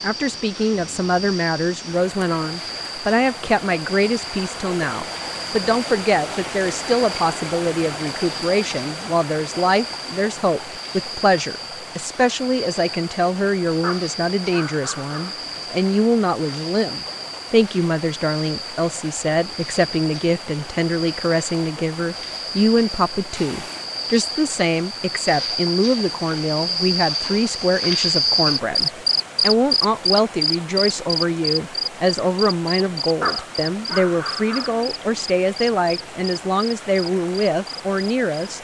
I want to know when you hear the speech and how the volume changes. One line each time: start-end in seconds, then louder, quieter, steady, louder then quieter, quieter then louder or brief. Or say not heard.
0.0-38.5 steady.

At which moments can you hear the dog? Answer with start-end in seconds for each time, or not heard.
13.8-15.6, 33.2-35.2.